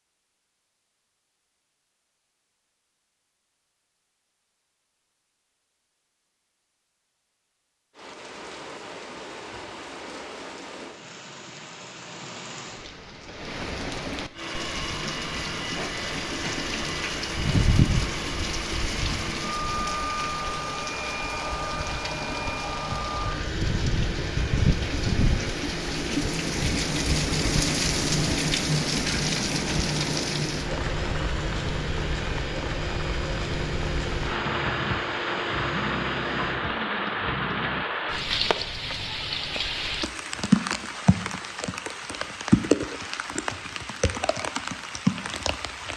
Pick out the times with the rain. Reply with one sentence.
The rain can be heard from 8.0 to 45.9 s.